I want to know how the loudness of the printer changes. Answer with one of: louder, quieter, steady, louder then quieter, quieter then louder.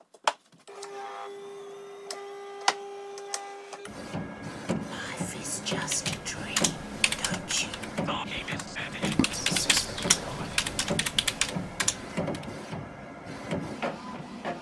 steady.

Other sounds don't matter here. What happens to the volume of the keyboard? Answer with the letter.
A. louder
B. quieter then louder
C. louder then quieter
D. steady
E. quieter
B.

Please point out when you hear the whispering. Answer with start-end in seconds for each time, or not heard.
4.9-10.8.